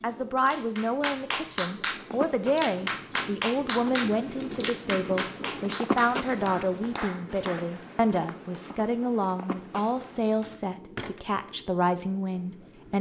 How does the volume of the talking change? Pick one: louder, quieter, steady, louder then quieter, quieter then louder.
steady.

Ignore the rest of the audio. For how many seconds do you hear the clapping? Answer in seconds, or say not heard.
8 s.